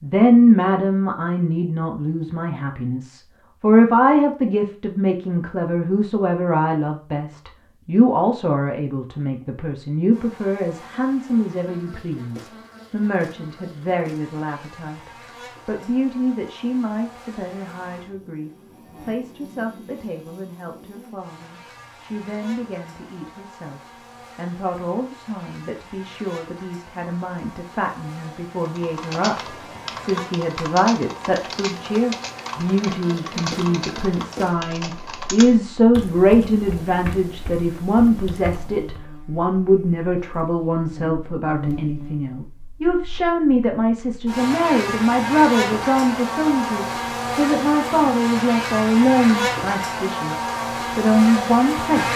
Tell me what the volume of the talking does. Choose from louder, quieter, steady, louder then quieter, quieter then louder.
quieter then louder.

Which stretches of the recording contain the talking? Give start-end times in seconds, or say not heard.
0.0-52.0.